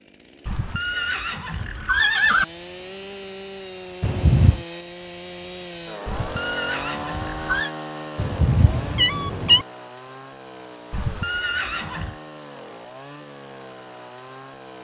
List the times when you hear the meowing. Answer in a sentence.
The meowing can be heard from 4.0 to 4.7 s and from 8.2 to 9.7 s.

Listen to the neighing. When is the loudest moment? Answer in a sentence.
The volume of the neighing peaks at 2 seconds.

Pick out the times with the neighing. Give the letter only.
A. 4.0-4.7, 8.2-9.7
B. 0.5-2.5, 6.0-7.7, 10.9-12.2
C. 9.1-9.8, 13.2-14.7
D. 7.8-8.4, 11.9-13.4
B.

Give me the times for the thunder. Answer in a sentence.
You can't hear the thunder here.